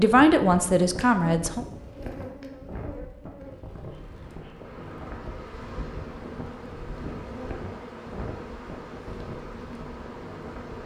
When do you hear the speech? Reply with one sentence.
The speech can be heard from 0.0 to 1.6 s.